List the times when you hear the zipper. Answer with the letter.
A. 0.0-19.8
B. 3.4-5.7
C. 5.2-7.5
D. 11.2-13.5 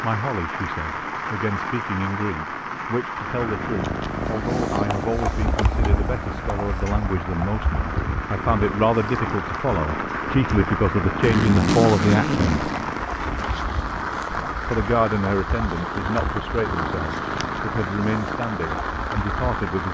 D.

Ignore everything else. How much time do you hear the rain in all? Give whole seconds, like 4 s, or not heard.
20 s.